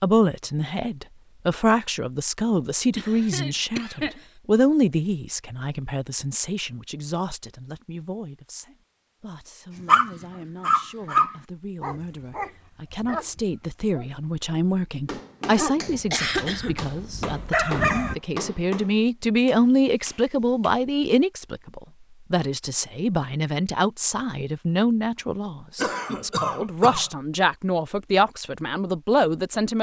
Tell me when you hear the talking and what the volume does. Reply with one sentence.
You can hear the talking from 0.0 to 29.7 s, getting quieter then louder.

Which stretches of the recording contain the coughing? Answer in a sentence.
The coughing can be heard from 3.0 to 4.2 s, from 16.1 to 16.8 s and from 25.8 to 27.1 s.